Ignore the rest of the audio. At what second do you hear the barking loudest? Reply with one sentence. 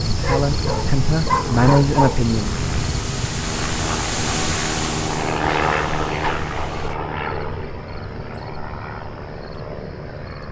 The loudest moment of the barking is at 2 seconds.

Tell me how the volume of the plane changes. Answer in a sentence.
The loudness of the plane goes up, then down.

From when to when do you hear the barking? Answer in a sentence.
The barking can be heard from 0.2 to 2.2 s and from 6.2 to 6.8 s.